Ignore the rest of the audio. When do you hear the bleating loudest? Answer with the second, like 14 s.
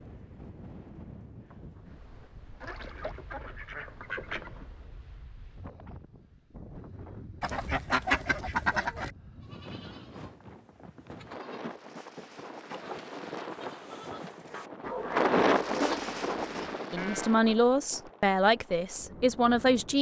16 s.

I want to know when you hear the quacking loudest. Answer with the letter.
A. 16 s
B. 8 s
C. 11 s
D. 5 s
B.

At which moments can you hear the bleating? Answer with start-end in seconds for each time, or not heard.
9.3-17.4.